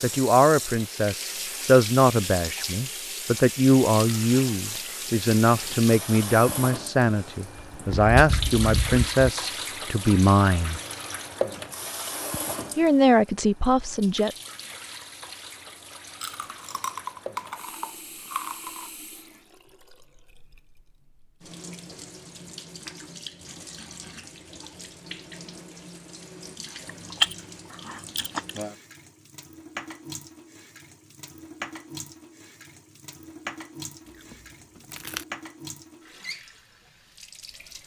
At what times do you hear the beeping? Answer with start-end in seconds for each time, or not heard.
not heard.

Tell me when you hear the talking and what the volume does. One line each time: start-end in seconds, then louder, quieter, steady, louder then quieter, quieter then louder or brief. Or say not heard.
0.0-10.8 steady
12.8-14.3 brief.